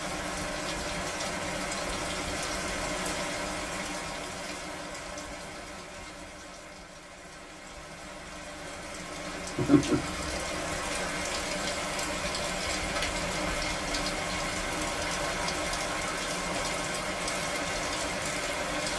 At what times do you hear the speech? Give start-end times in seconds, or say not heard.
not heard.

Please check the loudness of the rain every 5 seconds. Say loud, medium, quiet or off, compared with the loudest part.
loud, medium, loud, loud.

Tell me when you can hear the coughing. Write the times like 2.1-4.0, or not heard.
9.6-10.4.